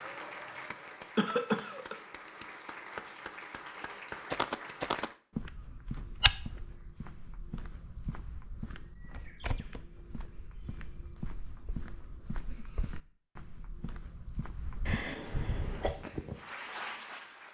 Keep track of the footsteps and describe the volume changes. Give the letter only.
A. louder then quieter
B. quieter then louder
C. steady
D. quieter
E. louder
D.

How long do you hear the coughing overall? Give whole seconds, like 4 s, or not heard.
2 s.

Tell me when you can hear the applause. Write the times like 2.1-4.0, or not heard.
0.0-5.2, 15.7-17.5.